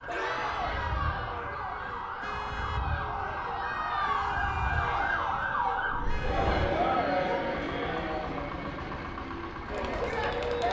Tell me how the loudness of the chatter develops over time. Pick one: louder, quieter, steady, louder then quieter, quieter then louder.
louder then quieter.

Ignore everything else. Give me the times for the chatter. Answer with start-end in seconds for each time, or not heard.
0.1-10.6.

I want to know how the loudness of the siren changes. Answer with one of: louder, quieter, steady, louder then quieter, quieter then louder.
louder.